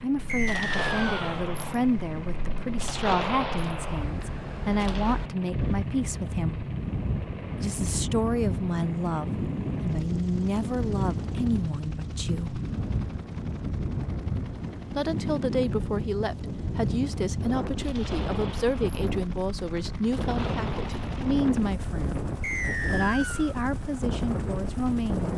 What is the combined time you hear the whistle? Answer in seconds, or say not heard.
2 s.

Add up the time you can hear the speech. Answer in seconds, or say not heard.
21 s.